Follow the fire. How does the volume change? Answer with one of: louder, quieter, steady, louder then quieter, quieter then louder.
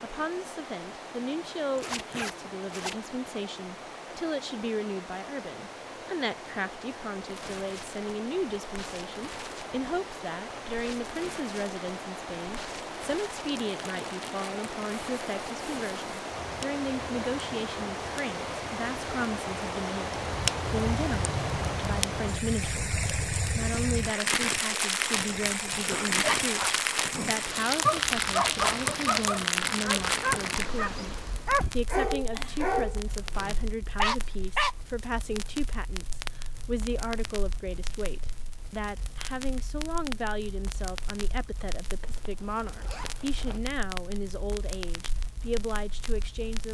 louder then quieter.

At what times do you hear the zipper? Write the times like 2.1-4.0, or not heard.
1.8-3.0, 42.0-43.6.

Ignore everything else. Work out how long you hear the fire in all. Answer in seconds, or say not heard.
39 s.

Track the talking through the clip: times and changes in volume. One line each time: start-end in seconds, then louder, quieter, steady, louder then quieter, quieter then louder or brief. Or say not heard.
0.0-22.9 steady
23.6-46.6 steady.